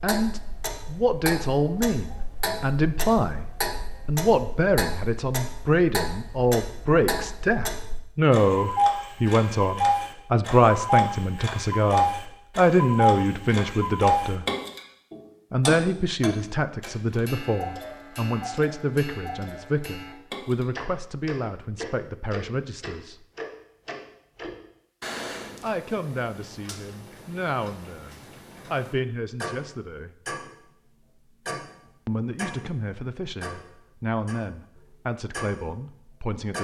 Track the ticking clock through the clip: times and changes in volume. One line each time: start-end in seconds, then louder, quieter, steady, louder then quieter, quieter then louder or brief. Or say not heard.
0.0-36.5 louder then quieter.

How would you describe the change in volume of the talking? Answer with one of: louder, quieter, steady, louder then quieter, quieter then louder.
quieter.